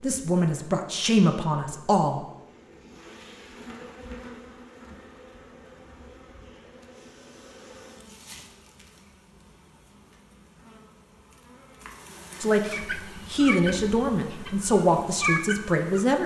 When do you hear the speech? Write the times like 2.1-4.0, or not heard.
0.0-2.2, 12.4-16.2.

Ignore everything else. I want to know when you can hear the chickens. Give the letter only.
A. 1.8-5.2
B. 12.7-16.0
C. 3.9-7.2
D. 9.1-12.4
B.